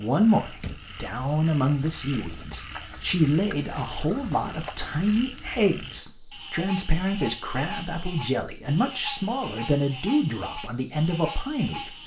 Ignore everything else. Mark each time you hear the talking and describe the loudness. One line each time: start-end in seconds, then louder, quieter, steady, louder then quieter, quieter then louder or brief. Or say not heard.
0.0-11.9 steady.